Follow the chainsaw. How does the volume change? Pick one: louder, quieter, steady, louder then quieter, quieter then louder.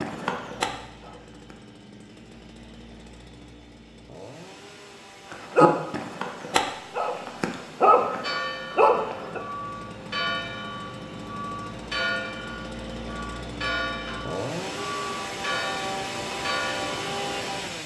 louder.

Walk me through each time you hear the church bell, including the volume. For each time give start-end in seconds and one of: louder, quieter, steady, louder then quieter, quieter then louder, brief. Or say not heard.
8.2-17.2 steady.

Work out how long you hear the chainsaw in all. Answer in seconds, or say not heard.
18 s.